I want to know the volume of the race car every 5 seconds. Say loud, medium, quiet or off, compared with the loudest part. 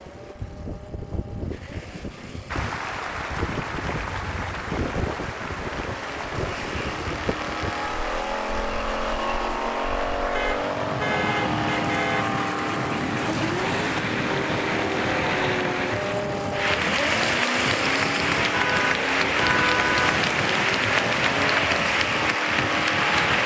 quiet, loud, loud, loud, loud.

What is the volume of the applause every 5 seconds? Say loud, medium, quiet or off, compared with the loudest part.
medium, medium, medium, loud, loud.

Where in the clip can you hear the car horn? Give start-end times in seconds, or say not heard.
3.9-4.5, 10.3-12.2, 18.5-20.2.